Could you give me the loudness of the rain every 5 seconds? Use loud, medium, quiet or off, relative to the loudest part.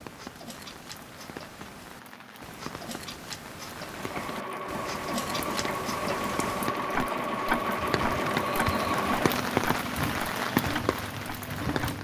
quiet, loud, loud.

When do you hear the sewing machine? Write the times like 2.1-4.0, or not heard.
3.8-11.9.